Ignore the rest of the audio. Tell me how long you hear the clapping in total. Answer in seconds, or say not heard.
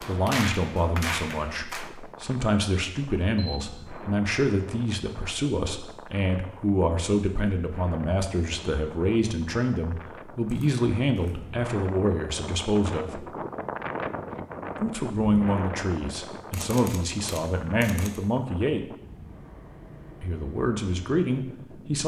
2 s.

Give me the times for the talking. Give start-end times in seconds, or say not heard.
0.0-13.2, 14.8-18.9, 20.2-22.0.